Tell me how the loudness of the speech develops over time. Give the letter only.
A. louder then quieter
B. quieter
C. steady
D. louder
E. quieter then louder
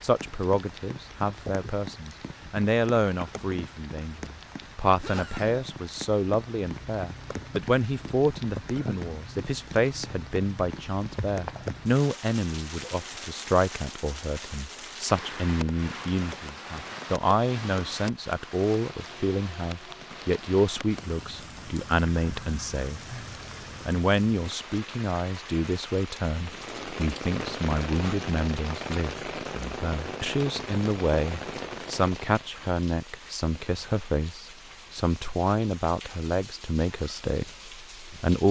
C.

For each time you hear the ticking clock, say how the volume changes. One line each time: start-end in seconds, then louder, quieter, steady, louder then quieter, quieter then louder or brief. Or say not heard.
not heard.